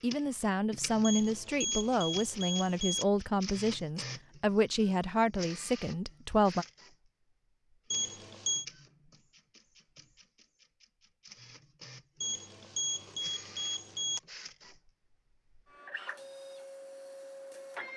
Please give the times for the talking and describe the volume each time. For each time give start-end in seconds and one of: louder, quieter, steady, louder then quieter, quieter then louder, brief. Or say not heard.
0.0-6.7 steady.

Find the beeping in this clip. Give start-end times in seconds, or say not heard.
1.0-3.0, 7.9-8.7, 12.2-14.2.